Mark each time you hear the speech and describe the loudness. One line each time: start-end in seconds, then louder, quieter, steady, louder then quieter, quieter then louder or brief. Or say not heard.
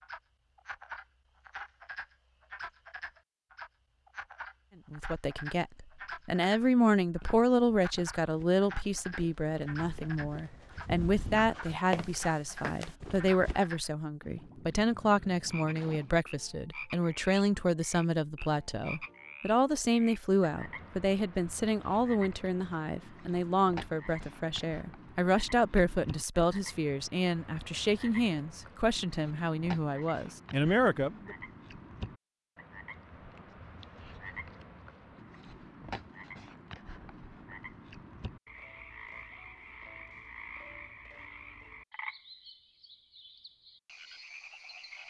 4.9-31.4 steady.